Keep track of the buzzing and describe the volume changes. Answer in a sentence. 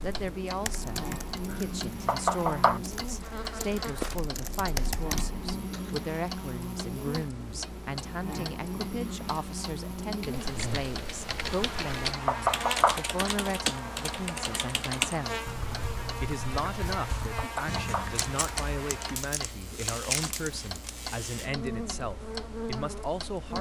The loudness of the buzzing stays about the same.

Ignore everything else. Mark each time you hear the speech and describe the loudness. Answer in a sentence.
You can hear the speech from 0.0 to 15.4 s, at a steady volume; and from 16.2 to 23.5 s, at a steady volume.